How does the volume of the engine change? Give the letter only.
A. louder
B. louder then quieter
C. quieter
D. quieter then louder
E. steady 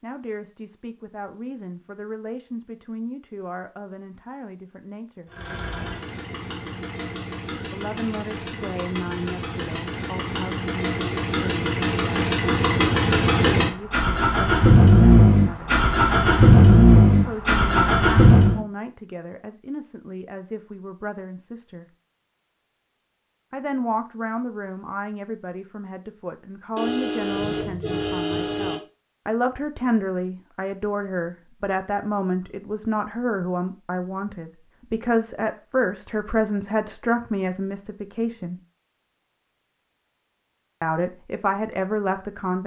A.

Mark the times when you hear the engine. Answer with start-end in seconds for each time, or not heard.
5.2-18.6.